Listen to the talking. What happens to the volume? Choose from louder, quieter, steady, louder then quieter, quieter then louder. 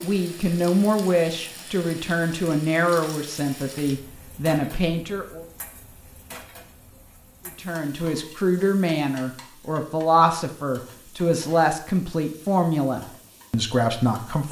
steady.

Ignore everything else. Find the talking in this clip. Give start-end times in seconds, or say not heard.
0.0-5.5, 7.5-14.4.